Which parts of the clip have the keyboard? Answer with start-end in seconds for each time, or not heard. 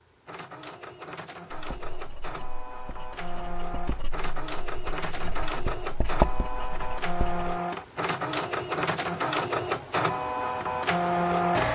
not heard.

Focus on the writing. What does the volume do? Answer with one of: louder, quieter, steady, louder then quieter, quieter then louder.
louder.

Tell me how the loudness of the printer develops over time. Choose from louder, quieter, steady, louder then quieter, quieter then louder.
louder.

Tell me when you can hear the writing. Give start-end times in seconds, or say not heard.
1.5-7.6.